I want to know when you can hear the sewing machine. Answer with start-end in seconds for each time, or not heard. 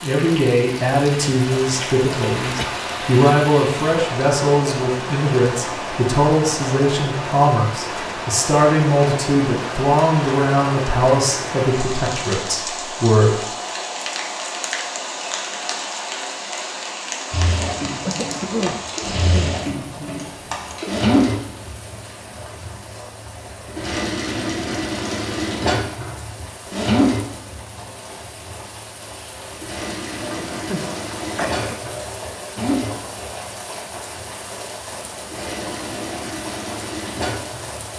17.3-37.9.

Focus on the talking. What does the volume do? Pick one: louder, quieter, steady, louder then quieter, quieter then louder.
steady.